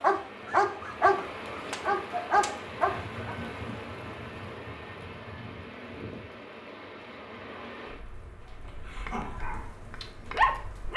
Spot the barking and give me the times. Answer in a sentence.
The barking can be heard from 0.0 to 3.4 s and from 8.9 to 10.9 s.